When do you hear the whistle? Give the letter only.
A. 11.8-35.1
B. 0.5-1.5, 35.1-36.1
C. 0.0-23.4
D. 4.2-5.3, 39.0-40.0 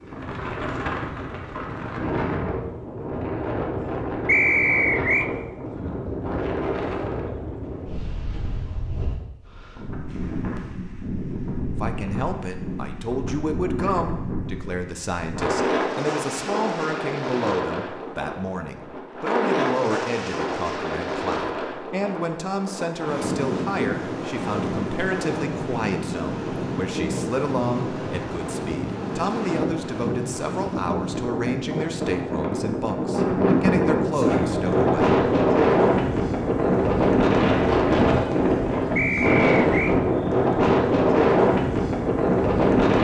D.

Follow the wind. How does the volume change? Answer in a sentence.
The volume of the wind goes up.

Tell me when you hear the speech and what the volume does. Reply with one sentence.
You can hear the speech from 11.8 to 35.1 s, at a steady volume.